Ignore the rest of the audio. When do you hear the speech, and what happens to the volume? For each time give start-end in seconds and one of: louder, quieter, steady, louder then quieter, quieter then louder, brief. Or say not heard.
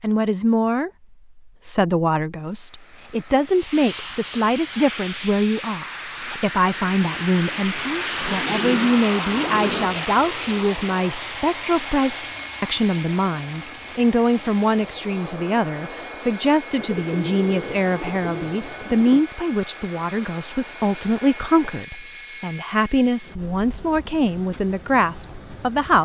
0.0-26.0 steady.